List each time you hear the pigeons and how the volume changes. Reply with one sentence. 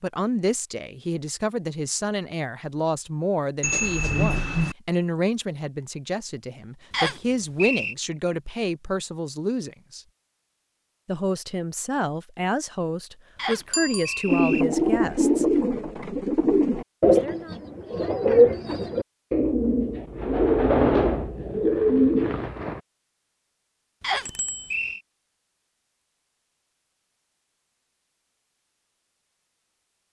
The pigeons can be heard from 14.2 to 22.8 s, at a steady volume.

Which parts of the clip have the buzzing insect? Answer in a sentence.
The buzzing insect can't be heard in this clip.